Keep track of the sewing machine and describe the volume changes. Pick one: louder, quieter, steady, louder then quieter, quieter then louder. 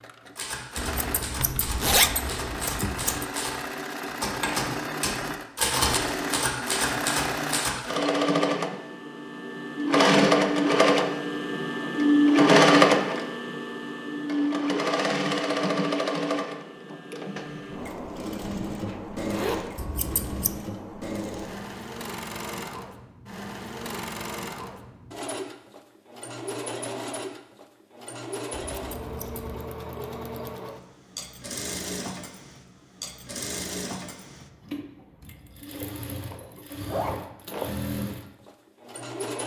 louder then quieter.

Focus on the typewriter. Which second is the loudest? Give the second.
6 s.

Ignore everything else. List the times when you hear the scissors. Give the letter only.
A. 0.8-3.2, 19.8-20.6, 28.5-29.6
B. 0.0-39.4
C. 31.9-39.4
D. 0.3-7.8
A.